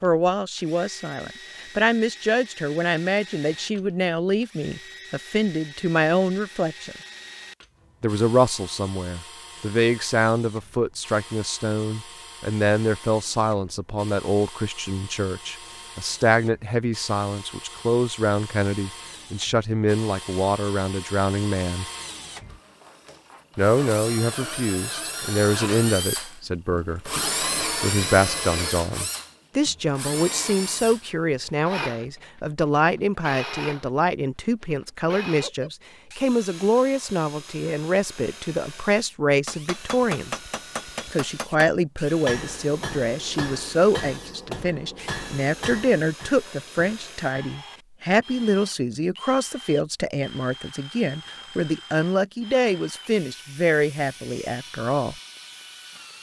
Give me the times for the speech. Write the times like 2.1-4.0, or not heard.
0.0-7.0, 8.0-21.9, 23.6-40.5, 41.1-55.1.